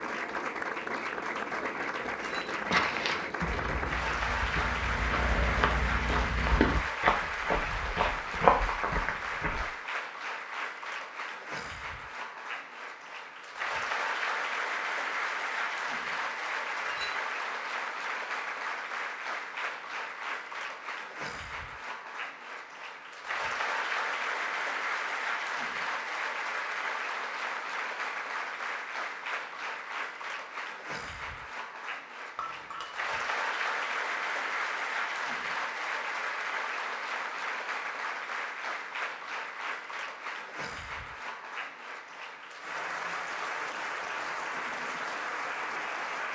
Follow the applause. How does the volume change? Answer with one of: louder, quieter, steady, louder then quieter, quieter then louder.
steady.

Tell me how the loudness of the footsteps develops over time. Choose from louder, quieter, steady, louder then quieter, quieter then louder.
louder.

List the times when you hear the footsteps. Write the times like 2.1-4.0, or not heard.
2.4-9.7.